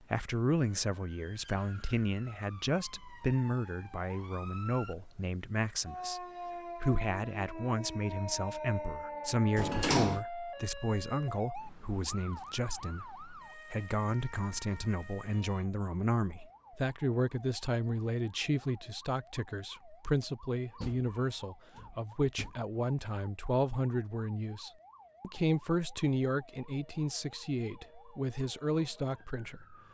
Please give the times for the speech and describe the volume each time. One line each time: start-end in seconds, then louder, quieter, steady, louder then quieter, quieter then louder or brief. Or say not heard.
0.1-29.8 steady.